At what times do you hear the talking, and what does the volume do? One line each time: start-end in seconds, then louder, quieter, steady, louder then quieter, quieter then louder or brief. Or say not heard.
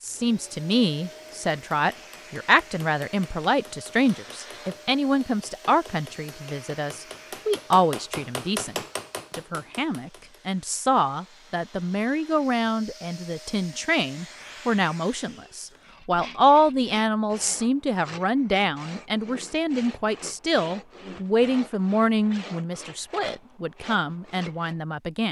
0.0-25.2 steady.